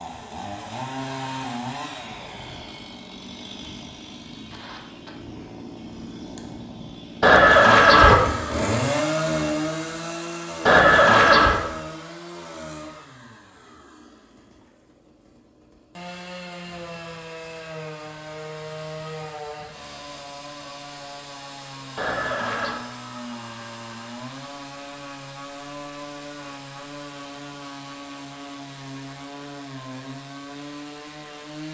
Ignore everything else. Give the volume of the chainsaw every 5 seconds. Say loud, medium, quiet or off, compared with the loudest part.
medium, loud, medium, medium, medium, medium, medium.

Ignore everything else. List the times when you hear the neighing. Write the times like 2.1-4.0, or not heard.
7.2-8.2, 10.7-11.6, 21.9-22.8.